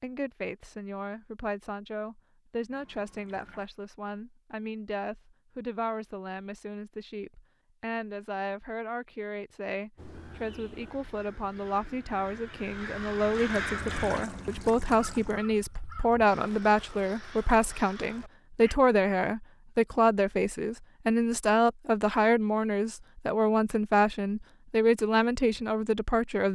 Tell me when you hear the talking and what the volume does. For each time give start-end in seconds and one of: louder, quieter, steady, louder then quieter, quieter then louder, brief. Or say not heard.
0.0-26.5 louder.